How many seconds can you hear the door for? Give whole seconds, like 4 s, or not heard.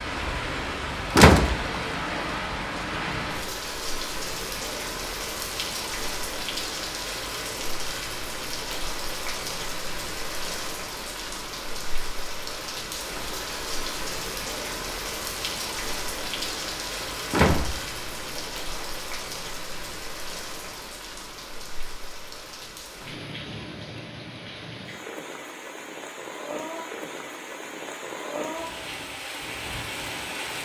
3 s.